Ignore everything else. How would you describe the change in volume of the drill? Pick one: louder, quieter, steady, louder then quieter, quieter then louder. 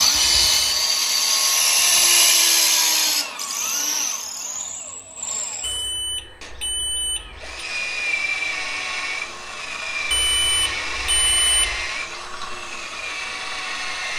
quieter.